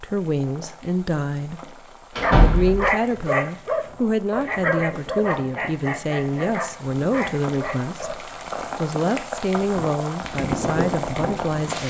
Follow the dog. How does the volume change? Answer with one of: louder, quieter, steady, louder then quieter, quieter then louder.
quieter.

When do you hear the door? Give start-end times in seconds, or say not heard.
2.1-2.9.